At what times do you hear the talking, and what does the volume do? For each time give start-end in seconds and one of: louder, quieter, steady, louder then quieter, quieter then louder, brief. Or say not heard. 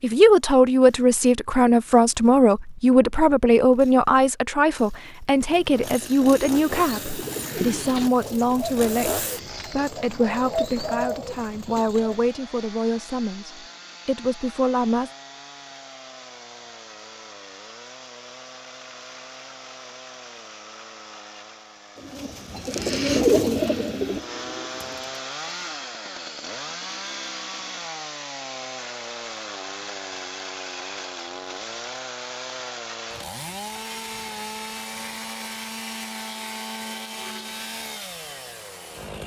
0.0-15.1 quieter.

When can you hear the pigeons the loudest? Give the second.
23 s.